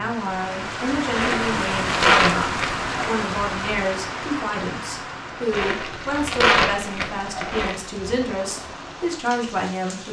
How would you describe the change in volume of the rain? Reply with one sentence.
The loudness of the rain goes down.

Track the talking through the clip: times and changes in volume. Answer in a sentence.
The talking can be heard from 0.0 to 10.0 s, at a steady volume.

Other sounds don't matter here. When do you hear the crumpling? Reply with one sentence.
The crumpling can be heard from 1.1 to 2.9 s and from 5.5 to 7.8 s.